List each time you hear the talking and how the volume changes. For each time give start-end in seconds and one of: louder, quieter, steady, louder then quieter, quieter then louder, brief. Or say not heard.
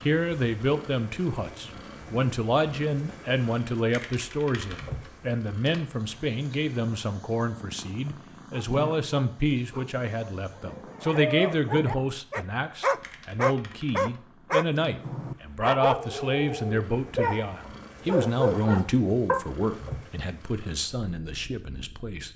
0.0-22.3 steady.